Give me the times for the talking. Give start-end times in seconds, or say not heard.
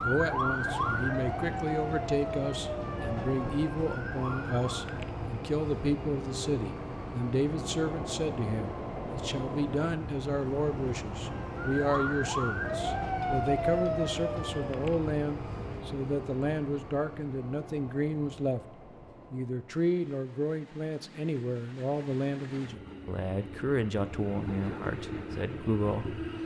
0.0-18.6, 19.3-26.2.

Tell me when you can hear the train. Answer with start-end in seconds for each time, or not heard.
0.0-26.4.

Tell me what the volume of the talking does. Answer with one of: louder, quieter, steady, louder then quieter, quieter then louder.
steady.